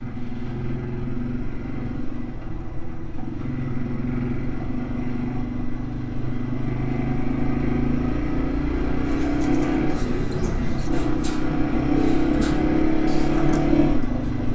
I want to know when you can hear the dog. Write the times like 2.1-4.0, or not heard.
not heard.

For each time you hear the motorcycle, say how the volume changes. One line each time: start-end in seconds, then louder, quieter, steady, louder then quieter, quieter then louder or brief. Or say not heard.
0.0-14.5 louder.